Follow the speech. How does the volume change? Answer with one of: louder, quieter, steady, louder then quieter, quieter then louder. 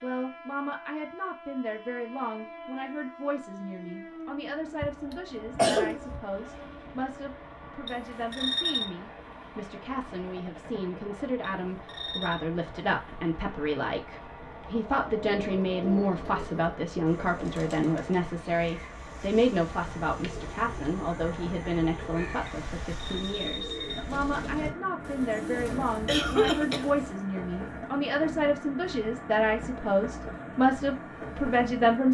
louder.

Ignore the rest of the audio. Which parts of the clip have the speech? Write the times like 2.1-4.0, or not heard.
0.0-32.0.